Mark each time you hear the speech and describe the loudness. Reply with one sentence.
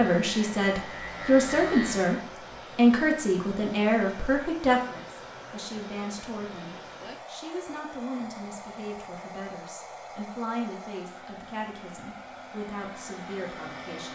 You can hear the speech from 0.0 to 14.1 s, getting quieter.